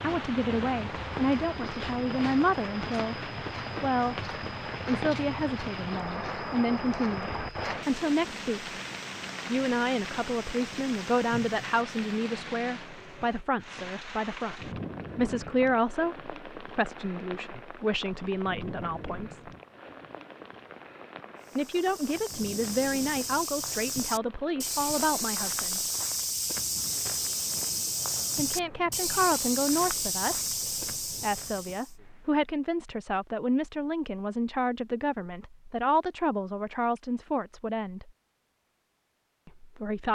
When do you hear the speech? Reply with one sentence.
The speech can be heard from 0.0 to 8.7 s, from 9.5 to 19.5 s, from 21.6 to 25.9 s, from 28.4 to 38.1 s and from 39.5 to 40.0 s.